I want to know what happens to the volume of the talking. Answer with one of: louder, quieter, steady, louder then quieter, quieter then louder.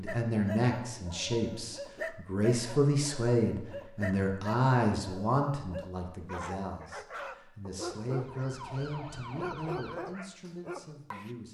quieter.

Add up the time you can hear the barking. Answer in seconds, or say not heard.
11 s.